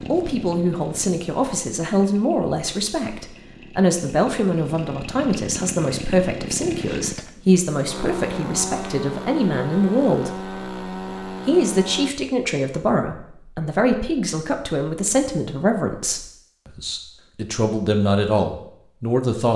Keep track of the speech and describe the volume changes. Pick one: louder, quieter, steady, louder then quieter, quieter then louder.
steady.